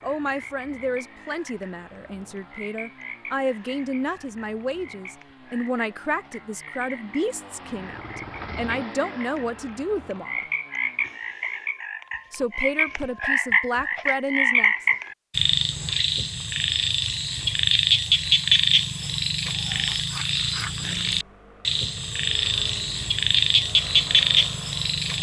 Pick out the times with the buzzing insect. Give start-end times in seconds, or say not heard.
not heard.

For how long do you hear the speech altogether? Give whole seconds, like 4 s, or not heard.
13 s.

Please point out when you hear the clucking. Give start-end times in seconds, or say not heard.
not heard.